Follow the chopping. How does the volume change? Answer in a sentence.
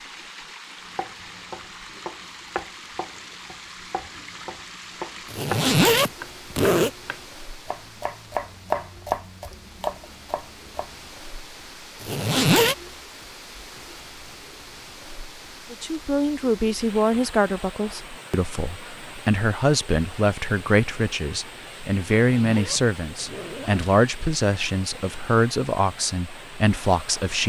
The loudness of the chopping goes up.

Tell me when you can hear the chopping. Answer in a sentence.
The chopping can be heard from 0.8 to 11.2 s.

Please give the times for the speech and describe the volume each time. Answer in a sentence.
The speech can be heard from 15.7 to 27.4 s, at a steady volume.